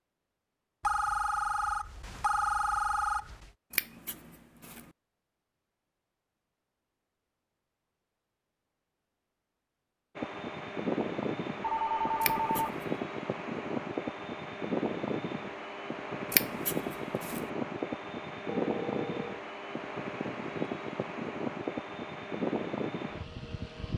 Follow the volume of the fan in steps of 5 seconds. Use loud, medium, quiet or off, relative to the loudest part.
off, off, loud, loud, loud.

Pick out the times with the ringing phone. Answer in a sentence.
The ringing phone can be heard from 0.8 to 3.5 s, from 11.6 to 12.7 s and from 18.4 to 19.4 s.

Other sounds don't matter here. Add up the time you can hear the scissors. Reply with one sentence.
The scissors can be heard for 3 seconds in total.